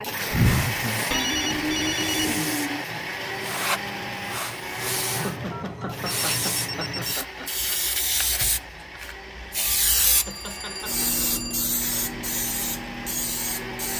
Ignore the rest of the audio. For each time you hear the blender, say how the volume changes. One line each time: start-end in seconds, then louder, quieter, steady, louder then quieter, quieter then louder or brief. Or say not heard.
0.0-13.9 quieter.